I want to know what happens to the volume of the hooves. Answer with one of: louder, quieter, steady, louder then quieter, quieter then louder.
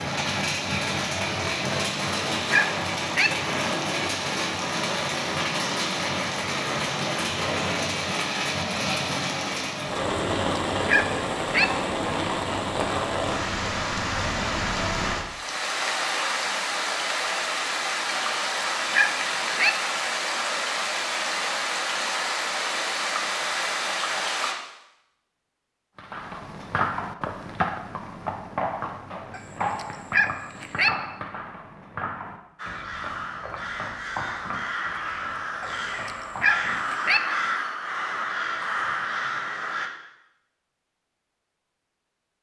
quieter.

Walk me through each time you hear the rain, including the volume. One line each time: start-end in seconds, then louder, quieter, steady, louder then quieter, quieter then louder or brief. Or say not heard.
0.0-24.6 steady.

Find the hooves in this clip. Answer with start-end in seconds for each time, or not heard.
25.9-37.5.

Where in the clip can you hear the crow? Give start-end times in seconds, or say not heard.
32.5-39.9.